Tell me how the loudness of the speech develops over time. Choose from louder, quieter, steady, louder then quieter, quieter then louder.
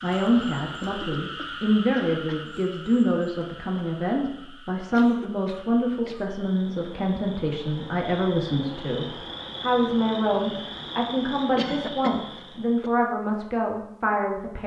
steady.